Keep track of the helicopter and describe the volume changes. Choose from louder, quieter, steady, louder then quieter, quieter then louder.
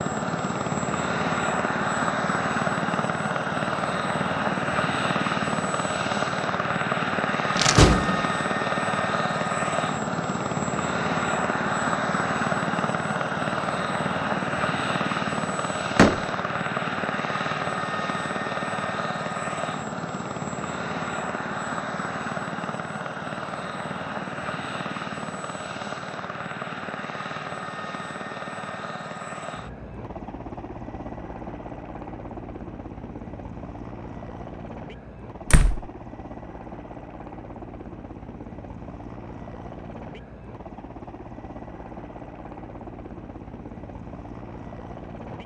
quieter.